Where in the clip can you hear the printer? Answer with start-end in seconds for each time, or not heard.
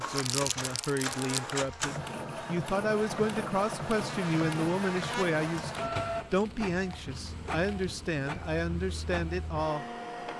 0.0-10.3.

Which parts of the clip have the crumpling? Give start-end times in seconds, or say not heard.
0.1-1.5, 6.3-8.0.